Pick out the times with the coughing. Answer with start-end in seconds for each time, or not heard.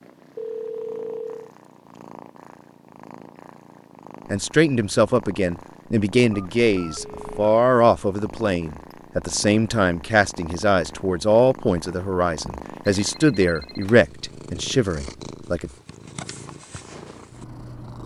not heard.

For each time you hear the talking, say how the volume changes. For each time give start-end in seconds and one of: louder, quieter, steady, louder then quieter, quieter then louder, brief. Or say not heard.
4.3-15.7 steady.